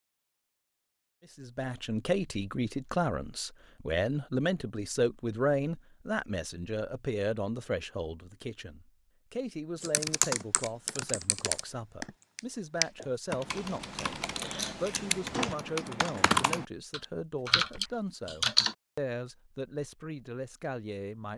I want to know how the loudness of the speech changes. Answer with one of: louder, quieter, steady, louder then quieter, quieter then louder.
quieter.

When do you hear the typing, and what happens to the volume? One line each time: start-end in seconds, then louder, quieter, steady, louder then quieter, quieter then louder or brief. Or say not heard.
9.8-18.8 quieter then louder.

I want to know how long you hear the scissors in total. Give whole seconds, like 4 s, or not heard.
2 s.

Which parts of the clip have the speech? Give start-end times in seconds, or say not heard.
1.4-21.3.